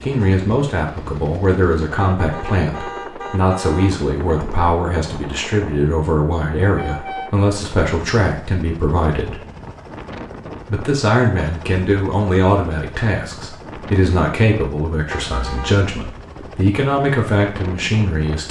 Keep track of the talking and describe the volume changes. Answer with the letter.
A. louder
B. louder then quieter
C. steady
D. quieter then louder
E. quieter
C.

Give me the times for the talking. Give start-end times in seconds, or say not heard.
0.0-9.4, 10.7-18.4.